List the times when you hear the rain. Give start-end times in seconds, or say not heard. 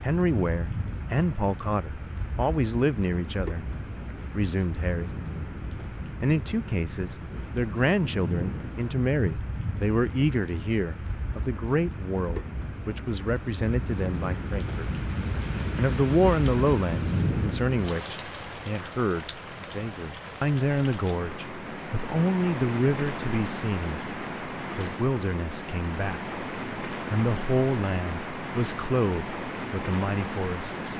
0.0-30.9.